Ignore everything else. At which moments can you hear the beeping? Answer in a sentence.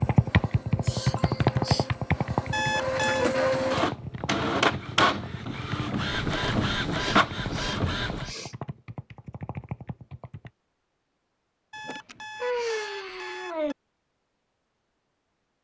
You can hear the beeping from 2.5 to 3.3 s and from 11.7 to 13.8 s.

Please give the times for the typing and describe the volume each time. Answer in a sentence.
You can hear the typing from 0.0 to 10.5 s, getting quieter.